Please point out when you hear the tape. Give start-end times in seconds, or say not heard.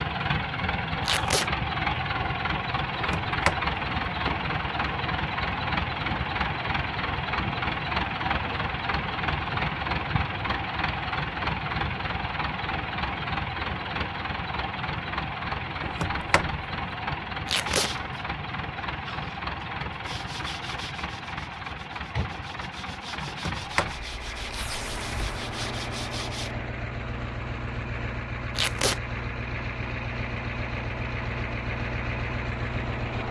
1.1-1.5, 17.4-17.9, 28.6-29.0.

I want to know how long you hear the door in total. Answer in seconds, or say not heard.
4 s.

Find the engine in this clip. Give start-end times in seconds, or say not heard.
0.0-33.2.